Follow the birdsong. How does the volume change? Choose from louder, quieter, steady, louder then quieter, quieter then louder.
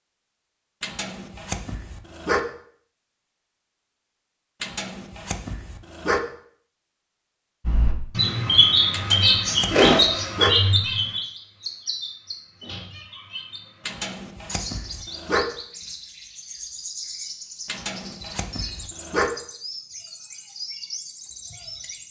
quieter.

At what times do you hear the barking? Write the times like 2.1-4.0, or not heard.
0.8-2.4, 4.6-6.2, 8.9-10.6, 13.8-15.4, 17.6-19.3.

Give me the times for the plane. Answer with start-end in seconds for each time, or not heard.
not heard.